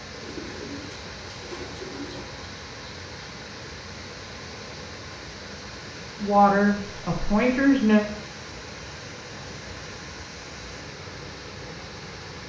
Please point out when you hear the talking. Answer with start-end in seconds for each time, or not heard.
6.2-8.1.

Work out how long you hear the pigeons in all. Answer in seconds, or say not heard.
2 s.